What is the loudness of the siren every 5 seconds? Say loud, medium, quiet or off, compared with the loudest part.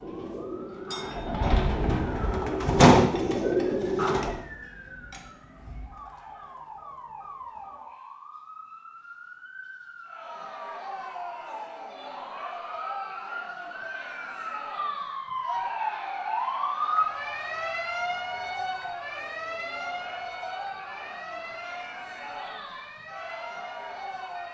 quiet, quiet, medium, loud, medium.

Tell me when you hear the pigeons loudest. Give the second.
3 s.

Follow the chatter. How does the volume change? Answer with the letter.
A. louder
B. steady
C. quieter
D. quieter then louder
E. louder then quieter
B.